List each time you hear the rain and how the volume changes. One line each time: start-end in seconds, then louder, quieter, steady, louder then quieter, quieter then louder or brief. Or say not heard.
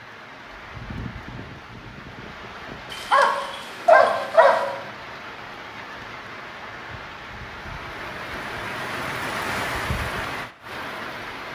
0.0-11.4 louder.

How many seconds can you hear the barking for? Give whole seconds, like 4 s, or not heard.
2 s.